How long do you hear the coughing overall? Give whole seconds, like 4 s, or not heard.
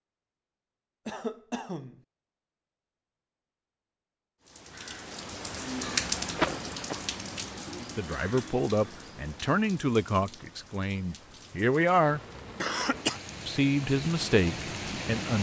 2 s.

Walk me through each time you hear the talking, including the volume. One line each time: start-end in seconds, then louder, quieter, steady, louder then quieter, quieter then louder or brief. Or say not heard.
7.8-12.2 quieter then louder
13.4-15.3 brief.